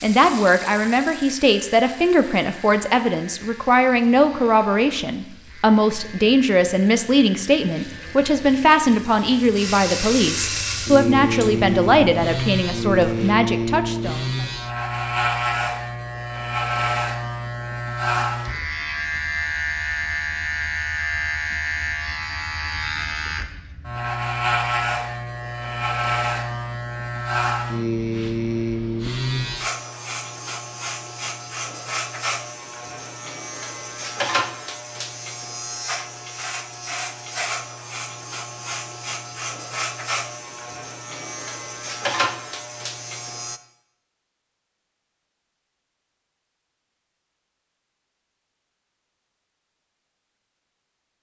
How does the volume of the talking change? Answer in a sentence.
The volume of the talking stays about the same.